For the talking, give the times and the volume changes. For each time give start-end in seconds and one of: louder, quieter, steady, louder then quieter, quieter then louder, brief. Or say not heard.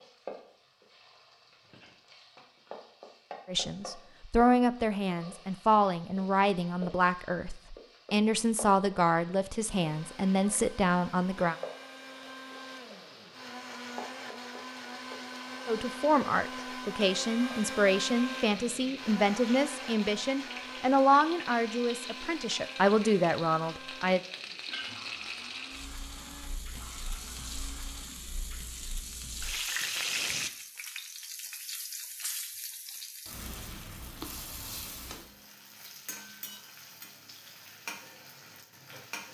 3.5-11.6 steady
15.7-24.2 steady.